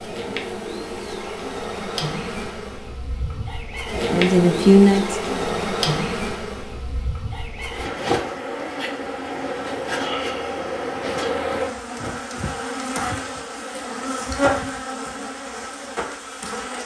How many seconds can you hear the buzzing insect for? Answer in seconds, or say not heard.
17 s.